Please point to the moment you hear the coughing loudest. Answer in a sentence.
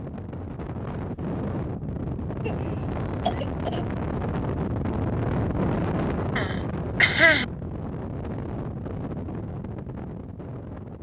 The volume of the coughing peaks at 7 seconds.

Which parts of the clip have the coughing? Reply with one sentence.
The coughing can be heard from 2.4 to 3.9 s and from 6.3 to 7.5 s.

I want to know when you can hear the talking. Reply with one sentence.
The talking can't be heard in this clip.